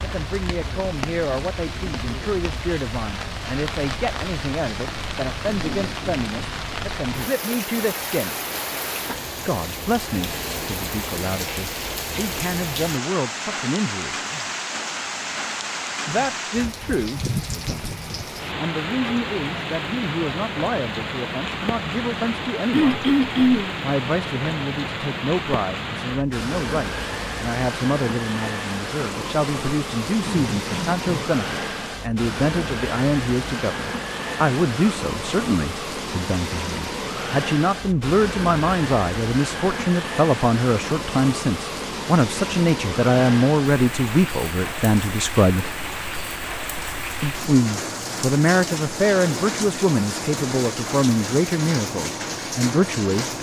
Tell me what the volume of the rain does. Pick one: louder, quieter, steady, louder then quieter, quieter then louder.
steady.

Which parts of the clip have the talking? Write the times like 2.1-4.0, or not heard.
0.0-8.3, 9.4-14.2, 16.1-23.0, 23.8-45.8, 47.2-53.3.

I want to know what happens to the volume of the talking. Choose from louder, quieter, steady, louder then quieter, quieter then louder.
louder.